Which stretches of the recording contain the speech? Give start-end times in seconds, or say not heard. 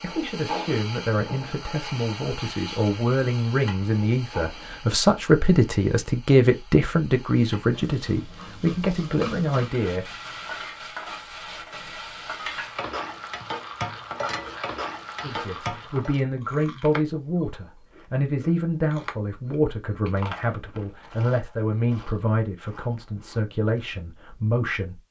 0.0-10.2, 15.2-25.0.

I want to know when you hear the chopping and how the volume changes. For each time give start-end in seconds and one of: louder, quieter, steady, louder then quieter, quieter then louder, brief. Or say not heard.
not heard.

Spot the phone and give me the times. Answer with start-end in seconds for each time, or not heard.
not heard.